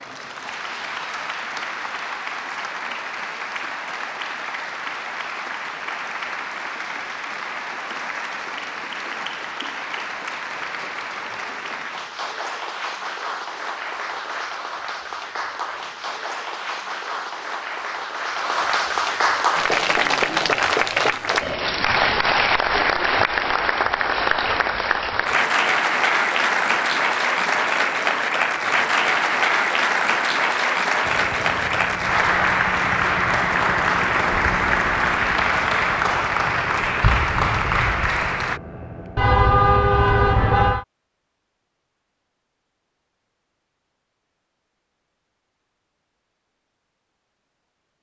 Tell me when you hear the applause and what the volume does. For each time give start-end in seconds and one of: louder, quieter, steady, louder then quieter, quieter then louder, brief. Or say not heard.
0.0-38.6 louder.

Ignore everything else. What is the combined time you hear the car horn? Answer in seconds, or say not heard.
2 s.